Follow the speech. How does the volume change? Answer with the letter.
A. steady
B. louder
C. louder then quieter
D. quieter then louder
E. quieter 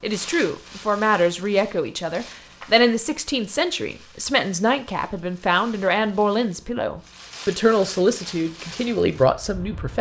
A.